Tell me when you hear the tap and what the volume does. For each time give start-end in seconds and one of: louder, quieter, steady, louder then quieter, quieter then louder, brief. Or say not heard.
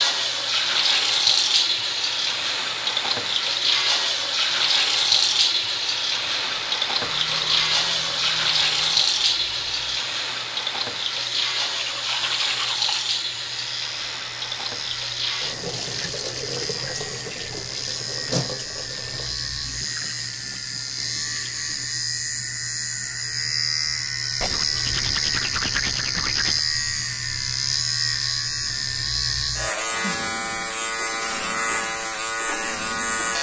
0.0-21.9 quieter.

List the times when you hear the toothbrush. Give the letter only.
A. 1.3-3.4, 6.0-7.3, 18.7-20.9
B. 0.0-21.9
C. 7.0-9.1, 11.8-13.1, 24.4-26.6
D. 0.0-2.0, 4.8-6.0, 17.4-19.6
C.